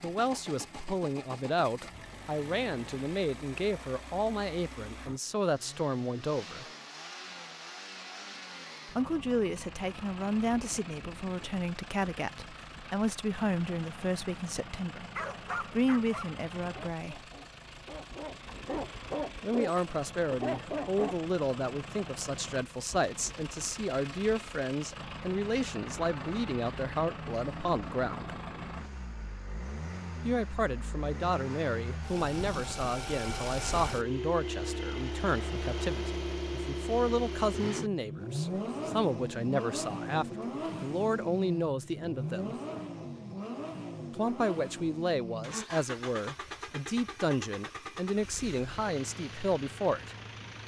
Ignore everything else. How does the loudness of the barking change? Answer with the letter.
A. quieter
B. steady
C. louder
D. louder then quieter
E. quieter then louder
E.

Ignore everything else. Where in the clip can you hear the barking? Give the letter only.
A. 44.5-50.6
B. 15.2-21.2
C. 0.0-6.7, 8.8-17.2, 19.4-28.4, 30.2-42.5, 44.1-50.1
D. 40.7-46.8
B.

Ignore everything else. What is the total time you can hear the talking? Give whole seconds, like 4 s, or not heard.
42 s.